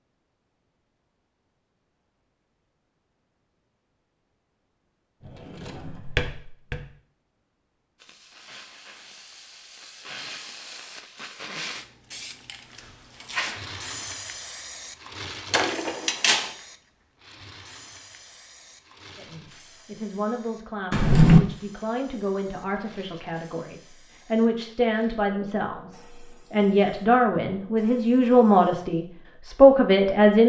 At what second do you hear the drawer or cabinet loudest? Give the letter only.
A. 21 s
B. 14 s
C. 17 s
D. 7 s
A.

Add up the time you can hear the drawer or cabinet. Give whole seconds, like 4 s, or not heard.
3 s.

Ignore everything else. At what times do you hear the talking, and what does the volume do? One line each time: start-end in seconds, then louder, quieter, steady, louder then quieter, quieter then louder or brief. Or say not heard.
19.1-30.4 louder.